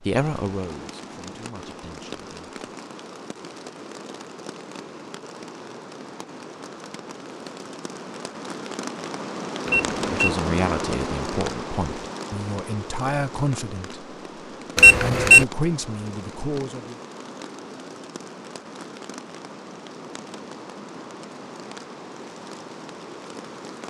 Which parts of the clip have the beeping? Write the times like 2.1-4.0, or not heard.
9.7-10.3, 14.8-15.4.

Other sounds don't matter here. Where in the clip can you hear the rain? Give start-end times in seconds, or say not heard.
0.0-23.8.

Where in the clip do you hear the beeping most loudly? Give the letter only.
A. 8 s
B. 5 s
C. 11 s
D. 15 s
D.